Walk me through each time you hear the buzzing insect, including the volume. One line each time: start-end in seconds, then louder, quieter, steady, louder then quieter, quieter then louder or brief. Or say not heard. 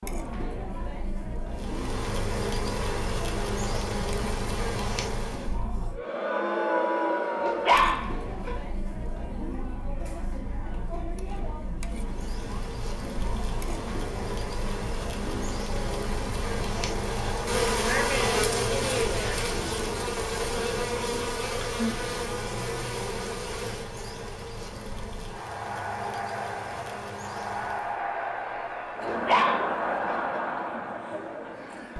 1.5-5.5 steady
11.9-28.0 louder then quieter.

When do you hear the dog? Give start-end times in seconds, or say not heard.
7.4-8.6, 29.0-30.2.